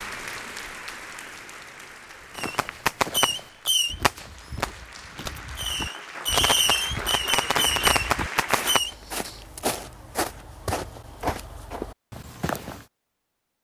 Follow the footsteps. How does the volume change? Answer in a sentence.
The volume of the footsteps goes up.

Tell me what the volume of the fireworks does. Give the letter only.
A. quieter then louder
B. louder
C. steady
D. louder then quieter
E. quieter
A.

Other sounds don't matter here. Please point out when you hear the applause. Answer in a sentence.
The applause can be heard from 0.0 to 8.8 s.